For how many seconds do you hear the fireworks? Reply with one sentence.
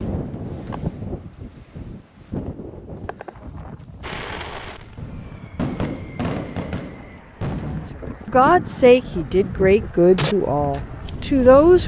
You can hear the fireworks for 7 seconds altogether.